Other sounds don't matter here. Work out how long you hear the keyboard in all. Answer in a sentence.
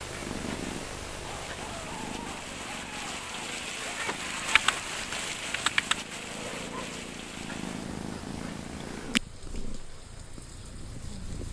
You can hear the keyboard for 2 seconds altogether.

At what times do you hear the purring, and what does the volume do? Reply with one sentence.
The purring can be heard from 0.0 to 11.4 s, getting quieter then louder.